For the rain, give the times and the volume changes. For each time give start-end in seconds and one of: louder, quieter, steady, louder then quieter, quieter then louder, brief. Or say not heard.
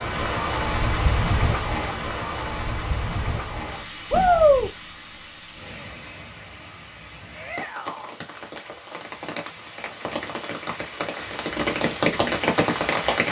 0.0-13.2 quieter then louder.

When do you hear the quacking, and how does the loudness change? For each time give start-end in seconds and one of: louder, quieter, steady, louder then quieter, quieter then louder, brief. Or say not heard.
not heard.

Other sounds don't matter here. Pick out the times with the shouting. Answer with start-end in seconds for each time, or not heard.
4.1-4.7, 7.3-8.2.